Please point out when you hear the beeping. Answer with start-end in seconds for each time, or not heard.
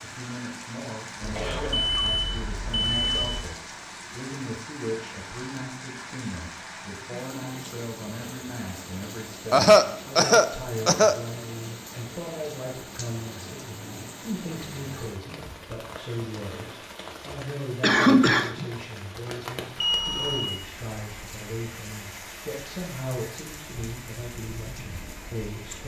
1.2-3.5, 19.8-20.4.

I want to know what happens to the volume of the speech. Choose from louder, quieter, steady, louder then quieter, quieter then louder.
steady.